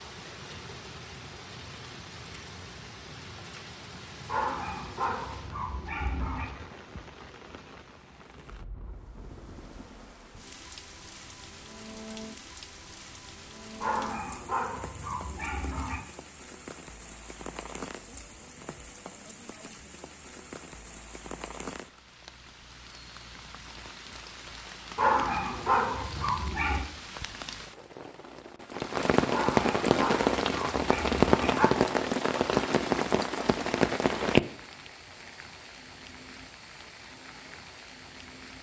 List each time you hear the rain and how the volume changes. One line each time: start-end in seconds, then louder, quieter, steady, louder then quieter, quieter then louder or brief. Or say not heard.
0.0-38.5 louder.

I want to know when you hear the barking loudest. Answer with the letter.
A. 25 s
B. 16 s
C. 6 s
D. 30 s
A.